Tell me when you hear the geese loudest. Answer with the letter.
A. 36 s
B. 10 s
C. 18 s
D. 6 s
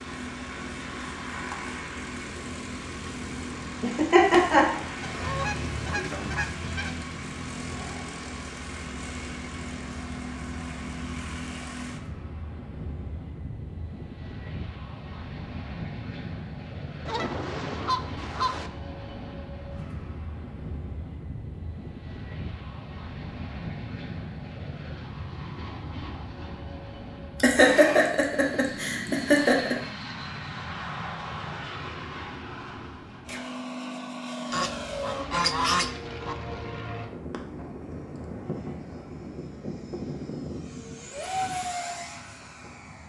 A.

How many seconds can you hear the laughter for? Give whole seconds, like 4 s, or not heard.
3 s.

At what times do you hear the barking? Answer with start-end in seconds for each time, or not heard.
not heard.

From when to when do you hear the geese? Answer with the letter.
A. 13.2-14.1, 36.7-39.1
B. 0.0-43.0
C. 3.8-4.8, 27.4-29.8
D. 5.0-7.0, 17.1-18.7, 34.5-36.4
D.